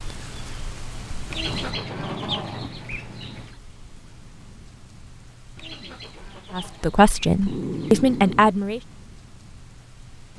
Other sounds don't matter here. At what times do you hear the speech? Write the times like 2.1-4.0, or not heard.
6.5-8.8.